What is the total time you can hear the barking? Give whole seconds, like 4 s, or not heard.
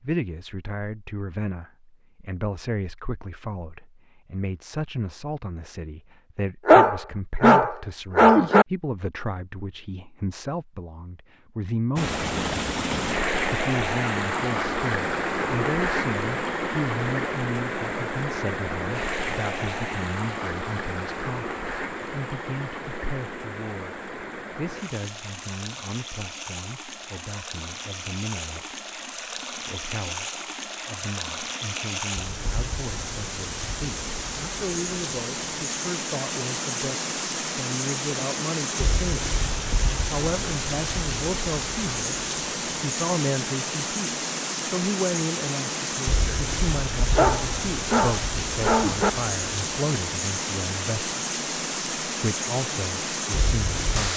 4 s.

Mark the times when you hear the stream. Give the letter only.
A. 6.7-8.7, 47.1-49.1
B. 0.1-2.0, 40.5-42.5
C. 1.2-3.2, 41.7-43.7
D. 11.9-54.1
D.